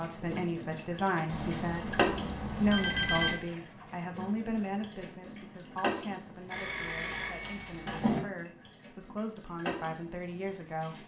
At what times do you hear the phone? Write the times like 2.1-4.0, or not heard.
1.2-3.4, 6.5-8.2.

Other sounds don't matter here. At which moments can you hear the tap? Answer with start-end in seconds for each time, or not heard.
0.0-11.0.